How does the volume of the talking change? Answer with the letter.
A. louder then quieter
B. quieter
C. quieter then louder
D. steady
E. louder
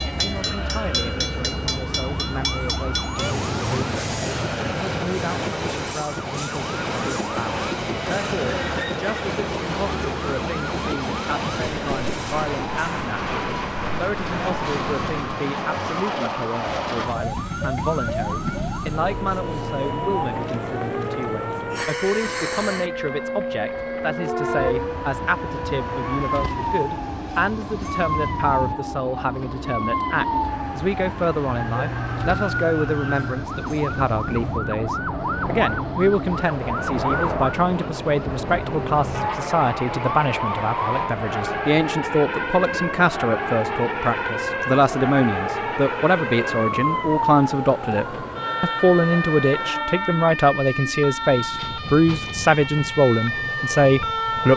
E.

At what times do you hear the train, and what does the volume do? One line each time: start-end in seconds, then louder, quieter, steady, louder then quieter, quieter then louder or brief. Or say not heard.
0.0-54.5 quieter.